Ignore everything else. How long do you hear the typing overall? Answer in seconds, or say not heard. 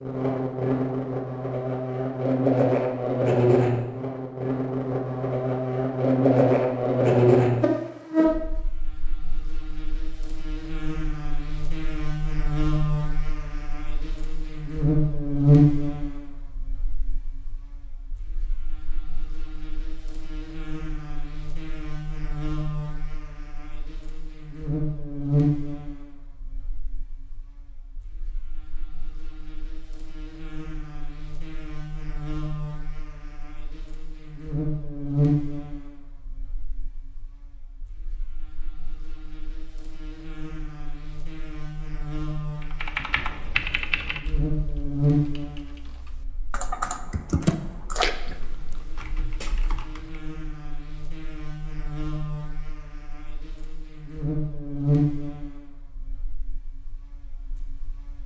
8 s.